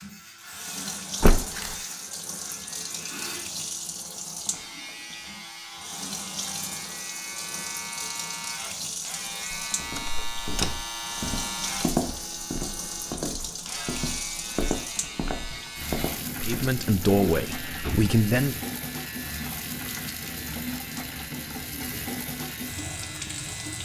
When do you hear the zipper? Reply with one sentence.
The zipper can't be heard in this clip.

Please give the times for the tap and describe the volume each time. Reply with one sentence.
The tap can be heard from 0.0 to 23.8 s, at a steady volume.